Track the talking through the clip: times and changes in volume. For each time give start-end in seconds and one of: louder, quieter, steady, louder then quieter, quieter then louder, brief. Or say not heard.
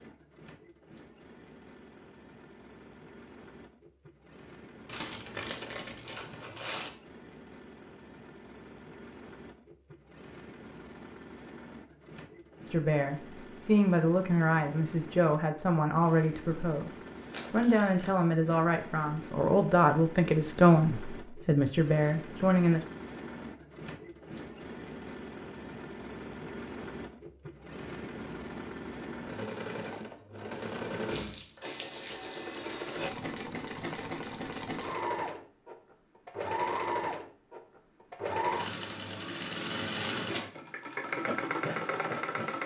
12.7-22.9 steady.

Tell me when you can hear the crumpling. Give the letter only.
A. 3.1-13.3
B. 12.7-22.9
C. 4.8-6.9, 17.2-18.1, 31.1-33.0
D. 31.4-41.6
C.